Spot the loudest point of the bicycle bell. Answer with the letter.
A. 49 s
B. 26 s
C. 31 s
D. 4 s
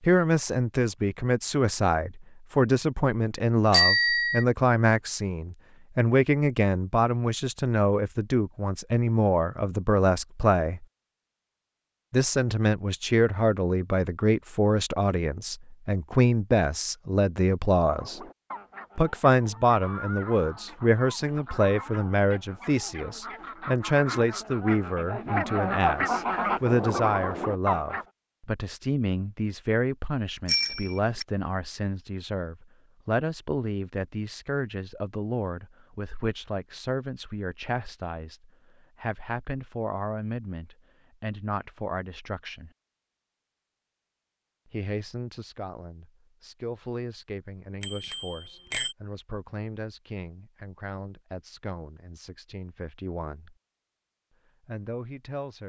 D.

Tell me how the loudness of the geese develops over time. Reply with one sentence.
The loudness of the geese goes up.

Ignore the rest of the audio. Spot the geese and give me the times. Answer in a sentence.
You can hear the geese from 17.8 to 28.1 s.